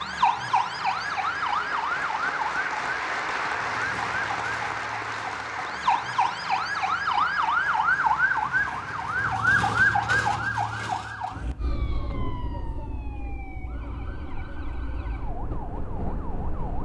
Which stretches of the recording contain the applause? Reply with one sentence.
The applause can be heard from 0.0 to 9.4 s.